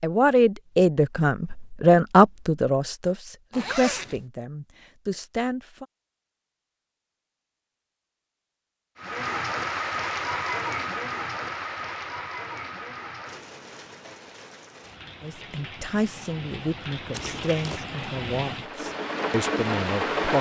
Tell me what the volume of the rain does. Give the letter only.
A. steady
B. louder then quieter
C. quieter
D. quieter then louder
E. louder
D.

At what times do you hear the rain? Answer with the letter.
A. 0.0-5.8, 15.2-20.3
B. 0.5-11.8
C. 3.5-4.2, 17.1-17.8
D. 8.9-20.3
D.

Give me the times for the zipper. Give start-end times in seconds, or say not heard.
3.5-4.2, 17.1-17.8.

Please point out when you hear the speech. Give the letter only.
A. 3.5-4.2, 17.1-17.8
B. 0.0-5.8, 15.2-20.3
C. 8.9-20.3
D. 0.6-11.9
B.